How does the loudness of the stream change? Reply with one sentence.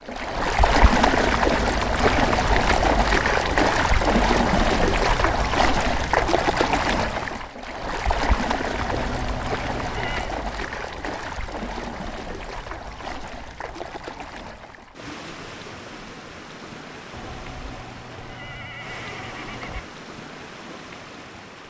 The volume of the stream goes down.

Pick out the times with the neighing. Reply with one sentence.
The neighing can be heard from 2.0 to 2.6 s, from 8.8 to 10.3 s and from 17.1 to 19.9 s.